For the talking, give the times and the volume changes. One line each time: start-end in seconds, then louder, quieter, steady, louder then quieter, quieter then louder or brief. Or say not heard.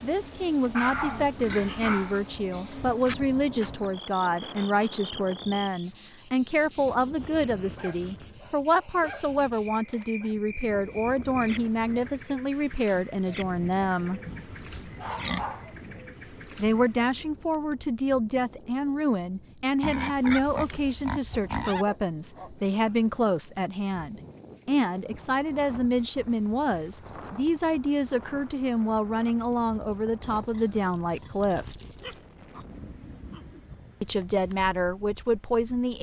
0.0-14.2 steady
16.6-31.6 steady
34.0-35.9 brief.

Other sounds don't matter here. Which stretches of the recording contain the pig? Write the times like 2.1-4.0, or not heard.
1.4-3.1, 14.2-15.9, 19.8-21.9, 30.2-32.2.